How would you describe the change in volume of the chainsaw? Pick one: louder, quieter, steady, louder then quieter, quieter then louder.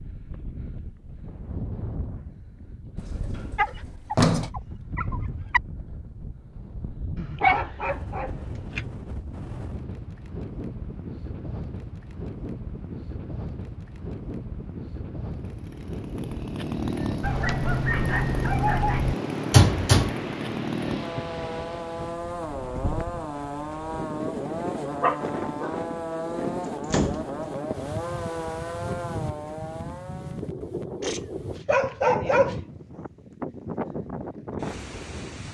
steady.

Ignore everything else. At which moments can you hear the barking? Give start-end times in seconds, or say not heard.
3.5-5.6, 7.2-8.8, 17.2-19.1, 25.0-25.8, 31.0-32.6.